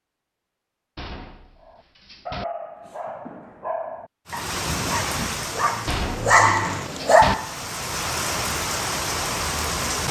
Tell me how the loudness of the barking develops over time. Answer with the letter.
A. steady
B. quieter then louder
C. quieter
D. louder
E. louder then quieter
D.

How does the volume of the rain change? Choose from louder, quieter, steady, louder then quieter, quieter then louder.
quieter then louder.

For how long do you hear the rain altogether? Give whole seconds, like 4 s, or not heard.
6 s.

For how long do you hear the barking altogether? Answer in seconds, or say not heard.
6 s.